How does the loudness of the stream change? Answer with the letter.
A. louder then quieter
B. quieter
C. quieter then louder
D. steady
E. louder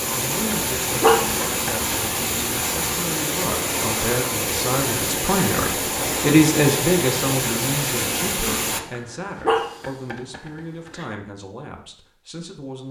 D.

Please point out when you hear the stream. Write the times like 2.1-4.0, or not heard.
0.0-8.8.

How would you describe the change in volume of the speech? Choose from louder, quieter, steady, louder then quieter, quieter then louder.
louder then quieter.